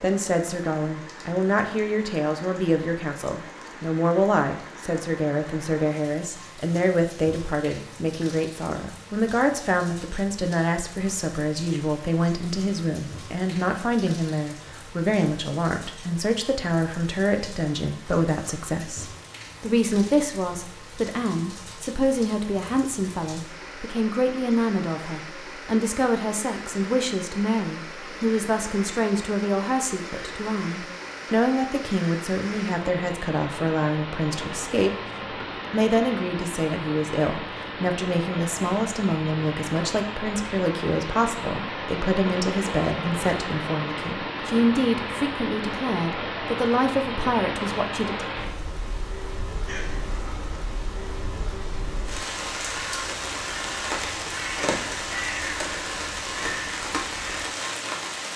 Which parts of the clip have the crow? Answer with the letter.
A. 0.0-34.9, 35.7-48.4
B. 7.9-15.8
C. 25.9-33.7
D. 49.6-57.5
D.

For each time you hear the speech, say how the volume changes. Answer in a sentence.
You can hear the speech from 0.0 to 34.9 s, at a steady volume; and from 35.7 to 48.4 s, at a steady volume.